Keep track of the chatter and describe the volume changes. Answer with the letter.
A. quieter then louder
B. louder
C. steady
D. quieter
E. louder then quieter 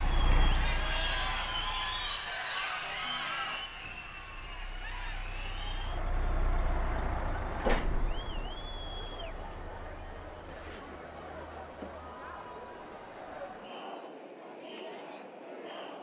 D.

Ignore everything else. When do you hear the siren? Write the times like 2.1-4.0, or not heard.
not heard.